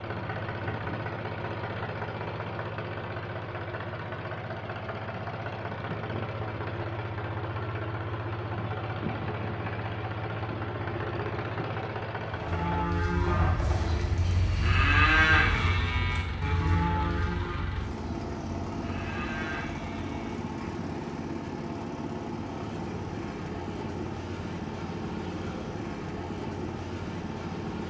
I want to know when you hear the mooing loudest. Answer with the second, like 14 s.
15 s.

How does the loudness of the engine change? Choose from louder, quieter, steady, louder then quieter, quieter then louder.
steady.